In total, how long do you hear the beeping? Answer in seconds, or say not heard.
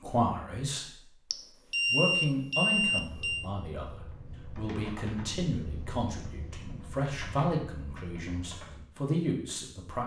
2 s.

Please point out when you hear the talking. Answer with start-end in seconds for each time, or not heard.
0.0-1.1, 1.9-10.0.